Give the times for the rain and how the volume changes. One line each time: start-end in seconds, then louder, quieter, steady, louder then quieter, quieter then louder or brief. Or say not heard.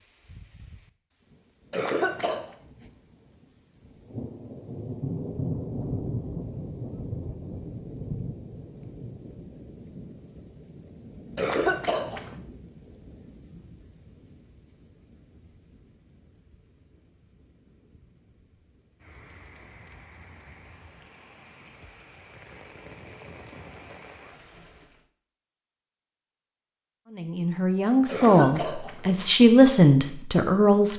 0.2-25.1 quieter then louder.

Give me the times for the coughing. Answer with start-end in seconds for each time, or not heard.
1.7-2.5, 11.3-12.3, 28.1-29.2.